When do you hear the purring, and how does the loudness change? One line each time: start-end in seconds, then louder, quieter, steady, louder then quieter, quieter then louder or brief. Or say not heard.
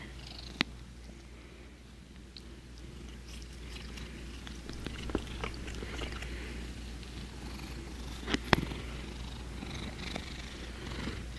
0.0-11.3 louder then quieter.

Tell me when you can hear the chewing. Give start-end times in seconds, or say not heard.
4.7-6.2.